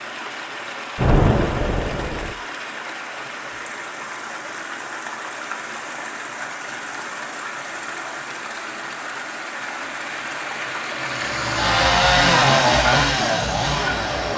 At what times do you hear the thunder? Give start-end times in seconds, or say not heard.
0.9-2.4.